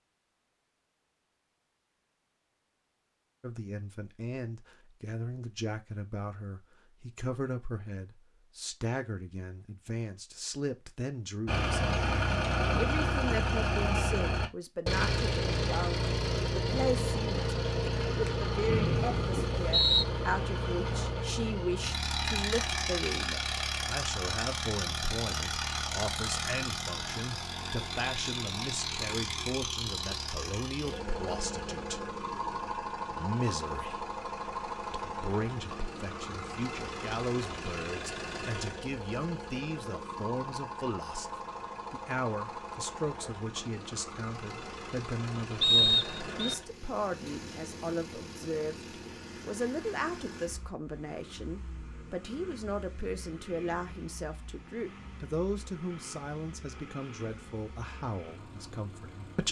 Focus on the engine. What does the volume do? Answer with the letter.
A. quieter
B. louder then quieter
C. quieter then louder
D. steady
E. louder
A.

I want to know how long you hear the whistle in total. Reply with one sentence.
You can hear the whistle for 2 seconds altogether.